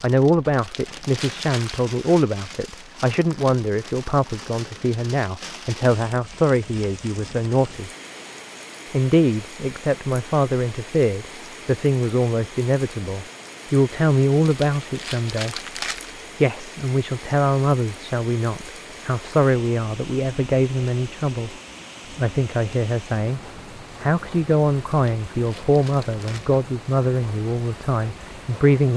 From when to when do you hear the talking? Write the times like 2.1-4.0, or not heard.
0.0-7.9, 8.9-15.6, 16.4-21.6, 22.1-23.4, 24.0-28.9.